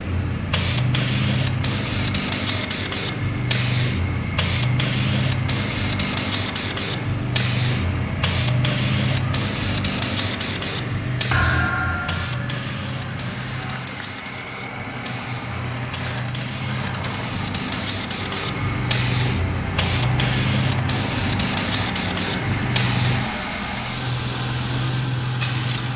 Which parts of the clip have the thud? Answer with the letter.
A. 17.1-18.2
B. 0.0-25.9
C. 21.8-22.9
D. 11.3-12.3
D.